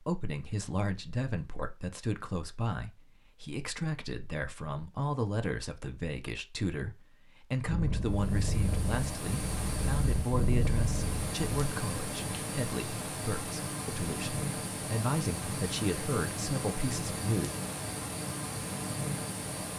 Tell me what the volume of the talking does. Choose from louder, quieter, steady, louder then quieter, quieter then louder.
steady.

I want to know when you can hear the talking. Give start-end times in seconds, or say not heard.
0.0-17.5.